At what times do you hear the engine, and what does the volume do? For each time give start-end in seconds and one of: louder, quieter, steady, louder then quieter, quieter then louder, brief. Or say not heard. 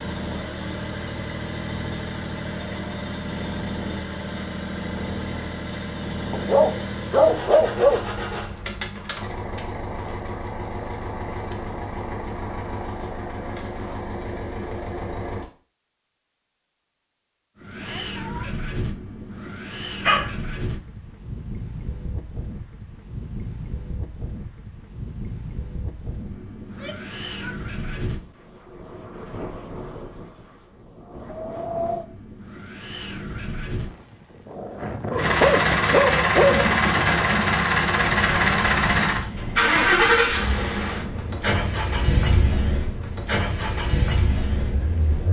0.0-15.5 steady
35.1-45.2 quieter.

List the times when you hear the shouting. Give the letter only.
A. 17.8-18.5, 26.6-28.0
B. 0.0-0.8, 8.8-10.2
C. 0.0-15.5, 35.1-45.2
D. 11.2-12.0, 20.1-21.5
A.